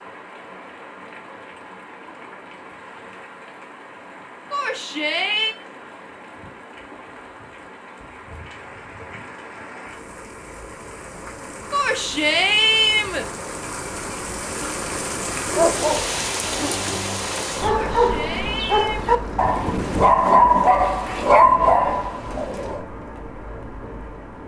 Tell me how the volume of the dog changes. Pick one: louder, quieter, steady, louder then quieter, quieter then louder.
louder.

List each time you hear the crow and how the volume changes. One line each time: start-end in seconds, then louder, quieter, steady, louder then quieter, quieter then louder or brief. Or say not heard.
not heard.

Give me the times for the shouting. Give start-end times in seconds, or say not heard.
4.5-5.5, 11.7-13.2, 17.6-19.2.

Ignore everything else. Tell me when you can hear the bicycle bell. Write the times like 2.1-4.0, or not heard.
not heard.